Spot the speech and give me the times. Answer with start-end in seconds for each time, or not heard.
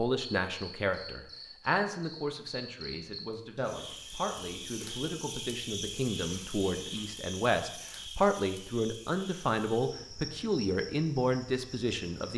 0.0-12.3.